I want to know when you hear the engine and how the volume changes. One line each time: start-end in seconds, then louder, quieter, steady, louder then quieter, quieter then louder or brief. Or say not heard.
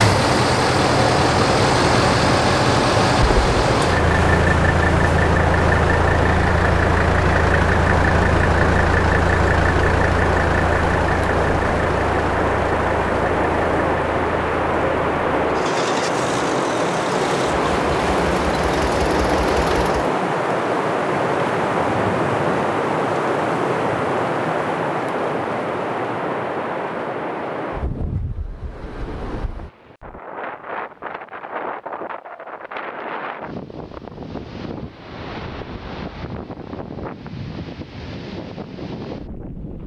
0.0-20.1 quieter.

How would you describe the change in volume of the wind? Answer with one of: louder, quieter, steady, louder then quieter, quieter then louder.
quieter.